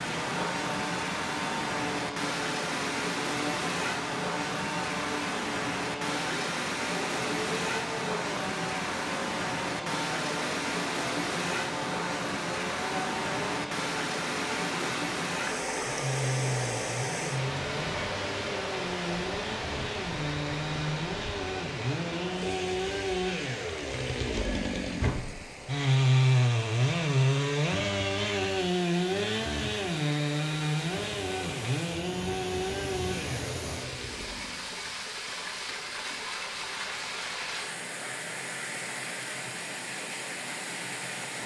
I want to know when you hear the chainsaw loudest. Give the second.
26 s.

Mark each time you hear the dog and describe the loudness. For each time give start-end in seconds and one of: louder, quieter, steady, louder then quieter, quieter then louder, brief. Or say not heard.
not heard.